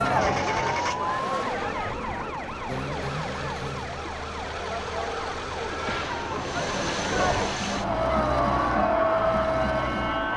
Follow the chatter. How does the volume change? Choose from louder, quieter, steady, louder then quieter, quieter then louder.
quieter then louder.